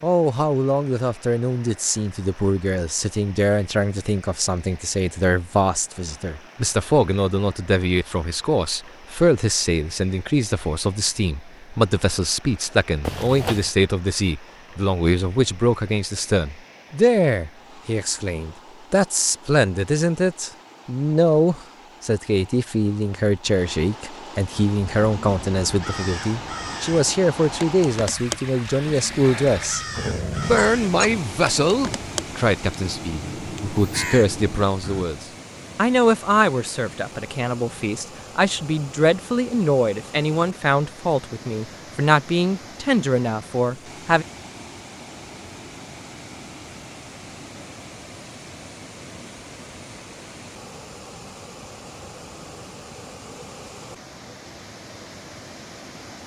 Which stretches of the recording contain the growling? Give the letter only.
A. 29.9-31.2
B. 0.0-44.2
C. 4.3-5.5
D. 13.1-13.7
A.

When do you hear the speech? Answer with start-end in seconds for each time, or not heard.
0.0-44.2.